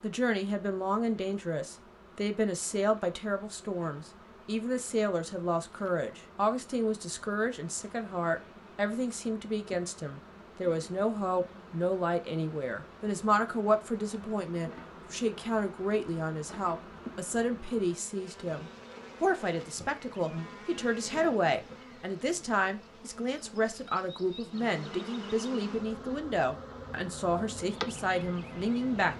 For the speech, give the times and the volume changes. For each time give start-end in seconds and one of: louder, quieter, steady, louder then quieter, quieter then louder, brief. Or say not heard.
0.0-29.1 steady.